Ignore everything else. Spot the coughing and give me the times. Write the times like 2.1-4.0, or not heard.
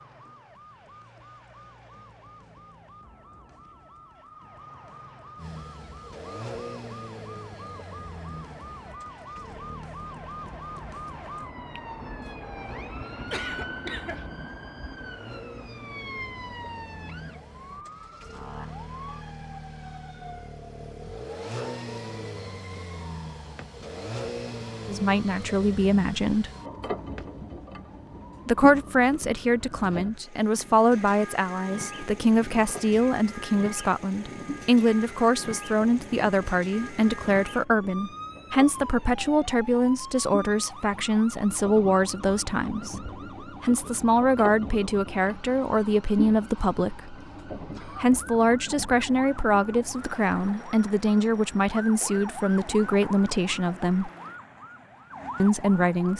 13.3-14.3.